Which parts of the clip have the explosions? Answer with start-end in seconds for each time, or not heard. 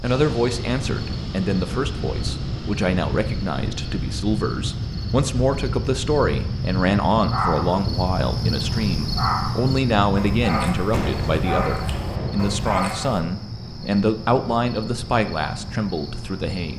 10.9-12.6.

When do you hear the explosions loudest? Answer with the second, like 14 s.
11 s.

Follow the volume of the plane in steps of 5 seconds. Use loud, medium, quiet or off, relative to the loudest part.
loud, loud, loud, off.